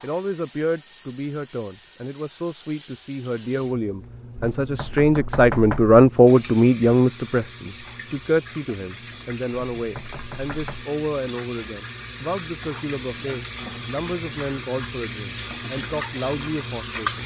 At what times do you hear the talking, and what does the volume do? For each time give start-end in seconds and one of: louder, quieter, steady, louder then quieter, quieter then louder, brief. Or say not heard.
0.0-17.2 louder then quieter.